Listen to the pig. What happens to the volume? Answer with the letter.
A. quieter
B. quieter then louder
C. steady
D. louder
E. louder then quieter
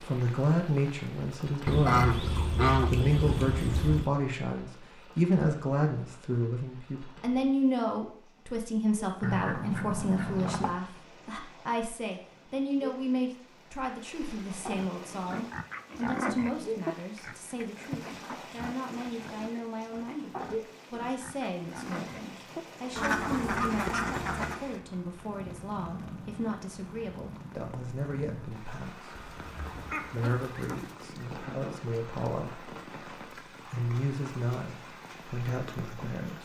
A.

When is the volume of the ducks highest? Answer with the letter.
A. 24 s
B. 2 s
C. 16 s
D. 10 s
B.